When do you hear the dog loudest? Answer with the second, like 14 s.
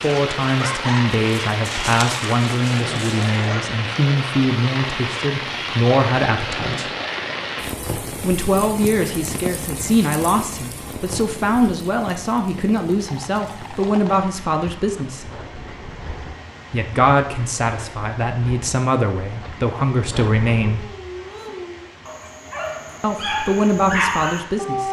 24 s.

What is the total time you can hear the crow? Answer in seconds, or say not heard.
not heard.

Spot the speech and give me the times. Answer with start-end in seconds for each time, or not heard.
0.0-6.9, 8.2-15.3, 16.7-20.9, 23.0-24.8.